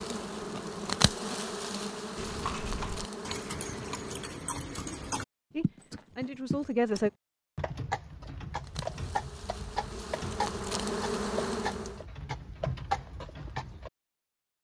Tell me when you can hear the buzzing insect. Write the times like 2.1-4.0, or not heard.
0.0-4.5, 8.5-12.1.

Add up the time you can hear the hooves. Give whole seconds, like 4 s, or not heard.
12 s.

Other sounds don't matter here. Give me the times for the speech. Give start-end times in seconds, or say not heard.
5.5-7.1.